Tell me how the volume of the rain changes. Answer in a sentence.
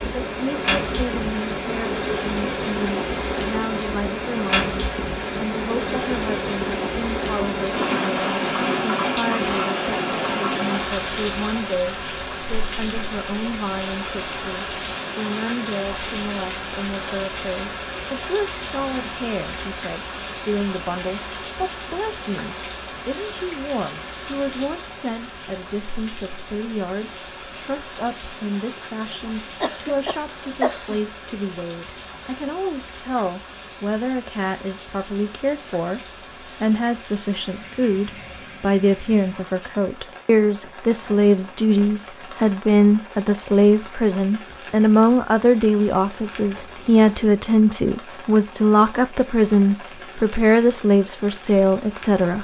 The loudness of the rain goes down.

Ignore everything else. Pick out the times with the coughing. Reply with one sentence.
You can hear the coughing from 29.6 to 31.0 s.